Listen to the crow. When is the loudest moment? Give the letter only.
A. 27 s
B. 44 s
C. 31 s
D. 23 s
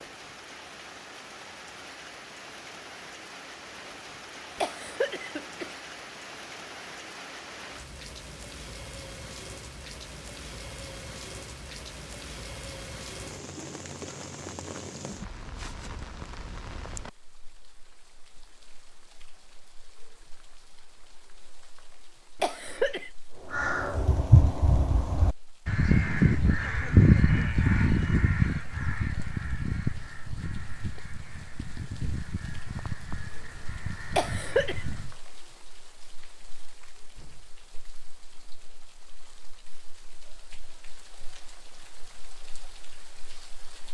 A.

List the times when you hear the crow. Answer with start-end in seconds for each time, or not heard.
23.5-35.1.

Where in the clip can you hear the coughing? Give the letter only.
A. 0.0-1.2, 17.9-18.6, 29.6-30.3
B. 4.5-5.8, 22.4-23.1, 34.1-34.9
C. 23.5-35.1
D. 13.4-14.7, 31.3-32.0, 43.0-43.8
B.